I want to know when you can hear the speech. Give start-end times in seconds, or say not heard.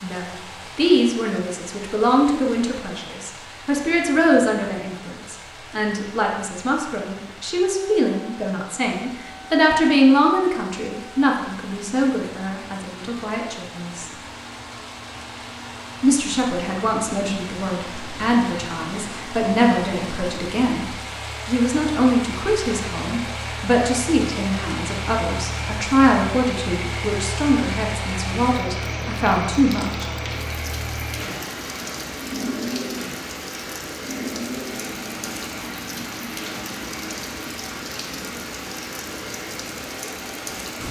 0.0-14.1, 16.0-30.1.